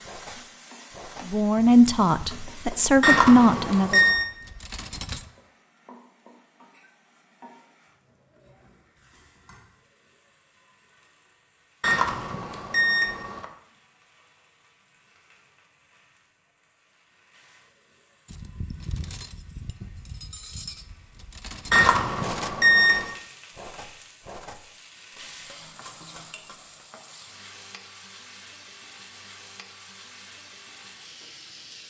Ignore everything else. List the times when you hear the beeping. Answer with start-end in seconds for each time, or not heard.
3.0-4.2, 11.8-13.4, 21.7-23.1.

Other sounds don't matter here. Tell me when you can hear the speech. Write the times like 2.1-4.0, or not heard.
1.2-4.0.